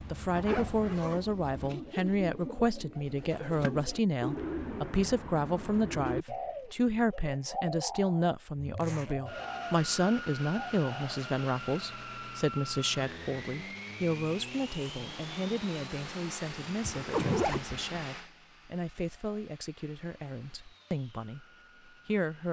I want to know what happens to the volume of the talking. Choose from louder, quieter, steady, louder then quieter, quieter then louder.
quieter.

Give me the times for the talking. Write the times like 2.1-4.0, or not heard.
0.0-22.4.